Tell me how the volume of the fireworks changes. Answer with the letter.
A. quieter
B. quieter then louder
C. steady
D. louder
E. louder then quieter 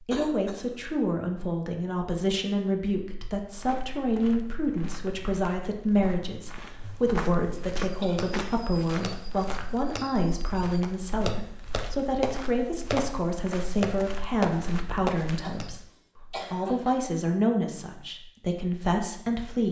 D.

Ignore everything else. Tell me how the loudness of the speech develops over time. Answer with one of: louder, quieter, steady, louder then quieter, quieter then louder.
steady.